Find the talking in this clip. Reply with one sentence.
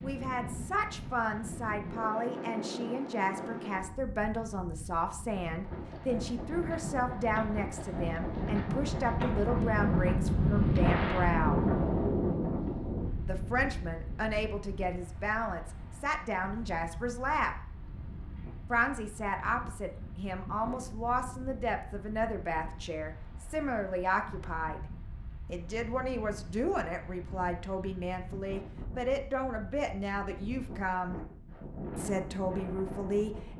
The talking can be heard from 0.0 to 11.7 s, from 13.2 to 17.6 s, from 18.7 to 24.8 s, from 25.4 to 31.2 s and from 31.9 to 33.5 s.